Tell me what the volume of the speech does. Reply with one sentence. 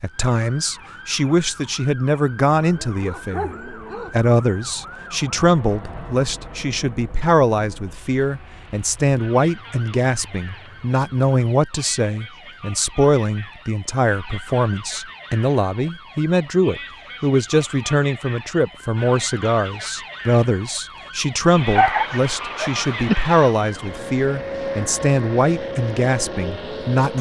The loudness of the speech stays about the same.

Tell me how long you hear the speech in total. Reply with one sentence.
You can hear the speech for 27 seconds altogether.